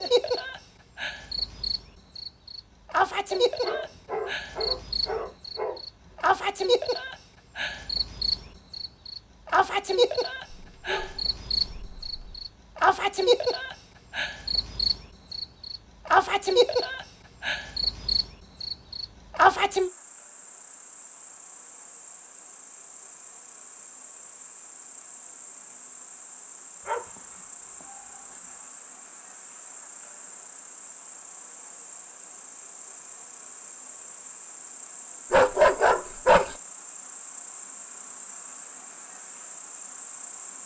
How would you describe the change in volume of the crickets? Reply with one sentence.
The loudness of the crickets goes down.